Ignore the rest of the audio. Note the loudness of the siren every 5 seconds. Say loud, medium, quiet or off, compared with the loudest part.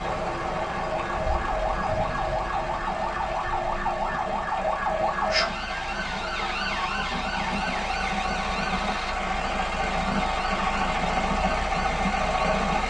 loud, loud, medium.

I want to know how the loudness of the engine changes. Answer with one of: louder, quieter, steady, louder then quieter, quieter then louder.
louder.